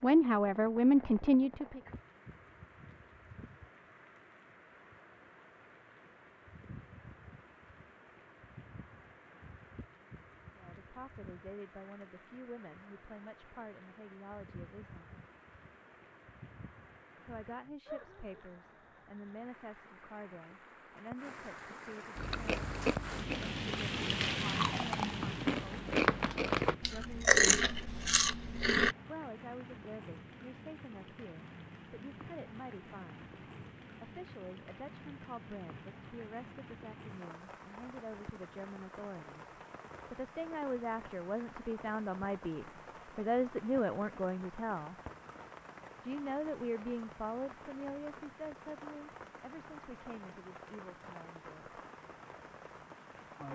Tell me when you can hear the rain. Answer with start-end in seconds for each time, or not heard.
0.0-53.5.